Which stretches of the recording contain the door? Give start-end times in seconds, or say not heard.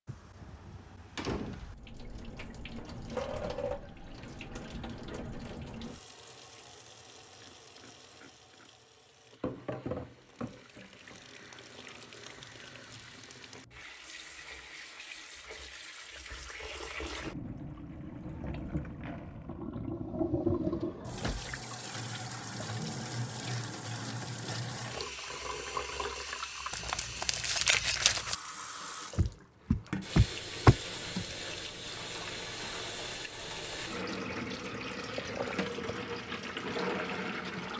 0.1-1.8, 19.9-21.6, 29.1-31.2.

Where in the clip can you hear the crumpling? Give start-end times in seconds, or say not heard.
26.7-28.4.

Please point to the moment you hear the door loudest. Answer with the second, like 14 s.
31 s.